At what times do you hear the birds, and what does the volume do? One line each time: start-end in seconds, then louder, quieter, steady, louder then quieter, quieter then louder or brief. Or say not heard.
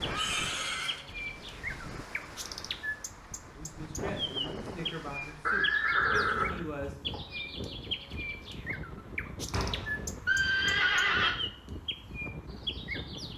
0.0-13.3 steady.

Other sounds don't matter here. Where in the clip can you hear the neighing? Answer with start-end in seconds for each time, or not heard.
0.1-0.9, 5.5-7.2, 9.5-11.3.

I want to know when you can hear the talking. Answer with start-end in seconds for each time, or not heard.
3.5-7.0.